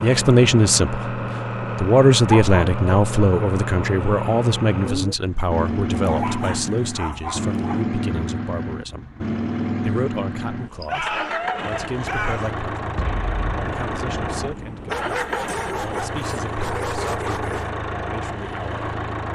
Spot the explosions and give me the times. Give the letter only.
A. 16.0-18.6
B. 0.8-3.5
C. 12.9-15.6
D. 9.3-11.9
C.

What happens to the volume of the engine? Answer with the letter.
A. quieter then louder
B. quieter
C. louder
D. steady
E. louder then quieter
D.